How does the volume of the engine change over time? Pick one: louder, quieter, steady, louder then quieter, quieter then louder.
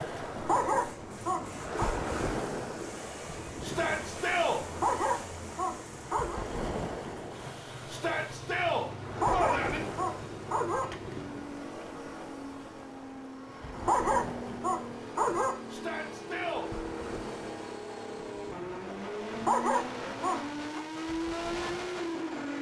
louder.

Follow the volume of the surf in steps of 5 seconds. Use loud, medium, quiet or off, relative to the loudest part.
loud, loud, medium, medium, medium.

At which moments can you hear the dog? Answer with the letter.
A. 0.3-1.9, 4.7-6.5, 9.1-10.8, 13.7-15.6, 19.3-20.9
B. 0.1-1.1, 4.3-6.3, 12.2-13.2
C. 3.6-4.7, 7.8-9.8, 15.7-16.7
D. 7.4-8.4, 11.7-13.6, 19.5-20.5
A.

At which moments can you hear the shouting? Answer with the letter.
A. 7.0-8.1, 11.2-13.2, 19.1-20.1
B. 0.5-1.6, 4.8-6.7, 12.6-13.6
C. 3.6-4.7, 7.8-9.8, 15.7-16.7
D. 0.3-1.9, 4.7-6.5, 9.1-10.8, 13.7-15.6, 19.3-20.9
C.